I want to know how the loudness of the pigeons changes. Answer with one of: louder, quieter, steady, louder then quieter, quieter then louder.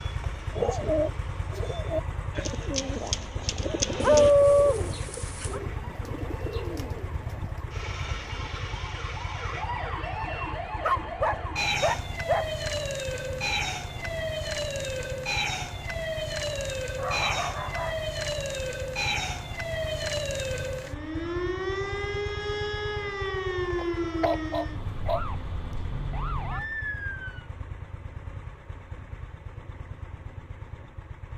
quieter.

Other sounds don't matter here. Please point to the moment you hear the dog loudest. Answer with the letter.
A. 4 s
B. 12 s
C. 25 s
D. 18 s
A.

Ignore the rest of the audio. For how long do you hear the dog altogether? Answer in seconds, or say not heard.
6 s.